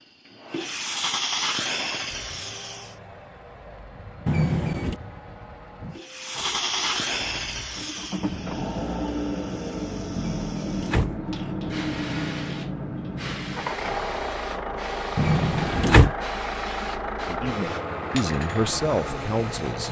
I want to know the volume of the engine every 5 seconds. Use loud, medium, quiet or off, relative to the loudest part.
quiet, loud, loud, loud.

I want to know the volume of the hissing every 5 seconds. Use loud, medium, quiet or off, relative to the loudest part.
loud, loud, medium, medium.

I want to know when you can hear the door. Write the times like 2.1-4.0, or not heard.
4.2-5.0, 10.2-11.2, 15.2-16.1.